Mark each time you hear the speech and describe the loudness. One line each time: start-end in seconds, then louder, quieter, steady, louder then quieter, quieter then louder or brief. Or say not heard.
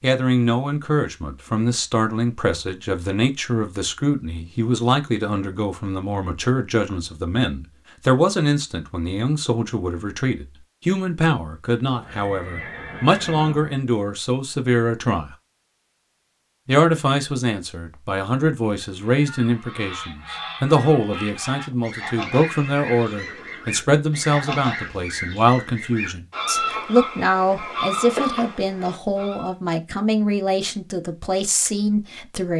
0.0-15.3 steady
16.6-32.5 steady.